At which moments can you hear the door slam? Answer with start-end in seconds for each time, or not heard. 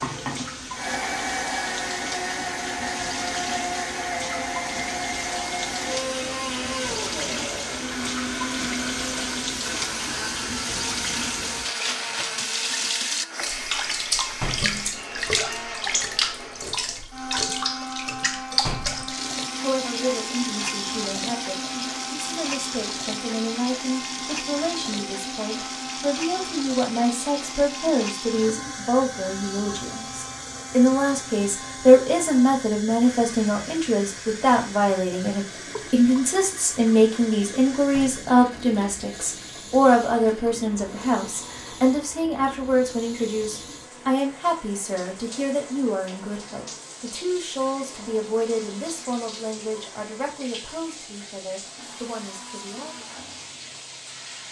14.4-14.8, 18.6-19.1, 37.9-38.4.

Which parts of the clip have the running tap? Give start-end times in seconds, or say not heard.
0.0-54.4.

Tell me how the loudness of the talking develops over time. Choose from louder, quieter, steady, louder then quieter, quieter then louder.
louder then quieter.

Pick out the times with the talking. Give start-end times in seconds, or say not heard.
19.6-53.0.